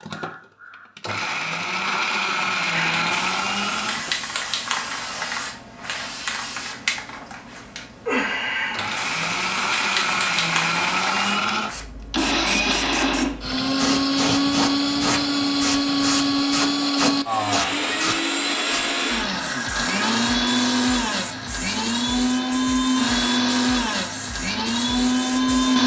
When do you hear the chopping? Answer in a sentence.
The chopping can't be heard in this clip.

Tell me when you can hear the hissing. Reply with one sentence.
You can hear the hissing from 2.7 to 25.8 s.